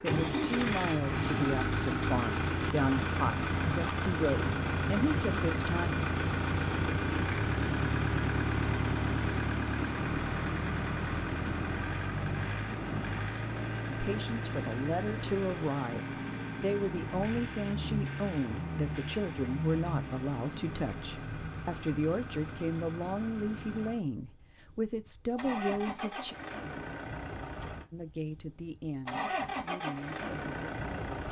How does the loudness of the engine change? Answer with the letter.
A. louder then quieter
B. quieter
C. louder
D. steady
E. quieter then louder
B.